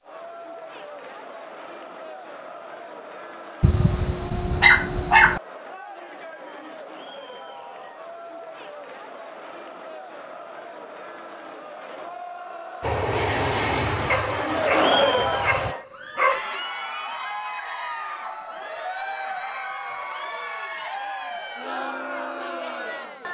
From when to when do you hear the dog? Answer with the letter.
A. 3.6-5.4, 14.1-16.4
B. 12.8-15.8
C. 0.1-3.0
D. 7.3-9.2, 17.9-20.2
A.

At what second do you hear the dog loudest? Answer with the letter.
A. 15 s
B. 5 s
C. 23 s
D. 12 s
B.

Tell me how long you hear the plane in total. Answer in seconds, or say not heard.
3 s.